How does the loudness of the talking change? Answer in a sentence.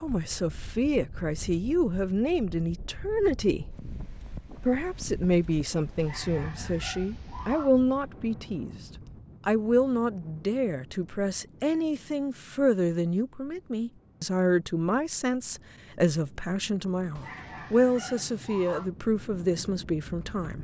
The loudness of the talking stays about the same.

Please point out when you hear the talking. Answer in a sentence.
The talking can be heard from 0.0 to 3.7 s, from 4.5 to 8.8 s and from 9.4 to 20.5 s.